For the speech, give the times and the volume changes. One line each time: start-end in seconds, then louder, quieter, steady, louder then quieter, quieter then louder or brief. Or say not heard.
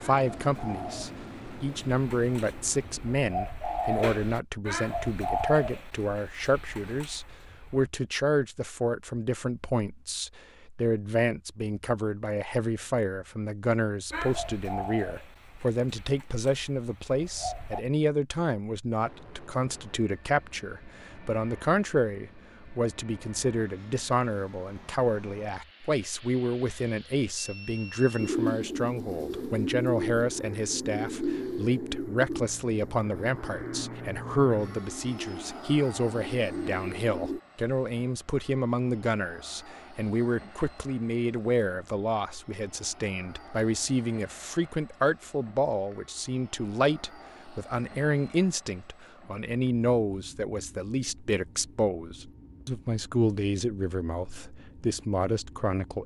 0.0-56.0 steady.